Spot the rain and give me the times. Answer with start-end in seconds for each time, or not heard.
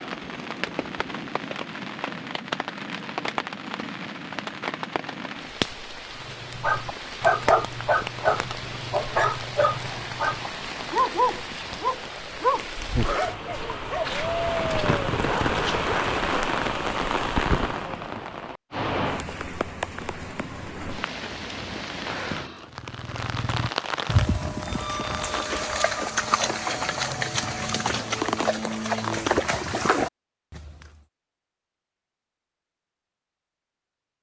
0.0-25.4.